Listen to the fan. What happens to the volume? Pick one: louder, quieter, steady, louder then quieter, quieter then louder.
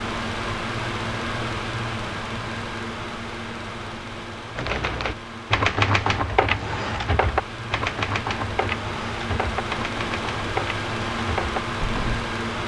quieter then louder.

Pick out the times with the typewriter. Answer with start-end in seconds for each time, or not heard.
4.5-12.2.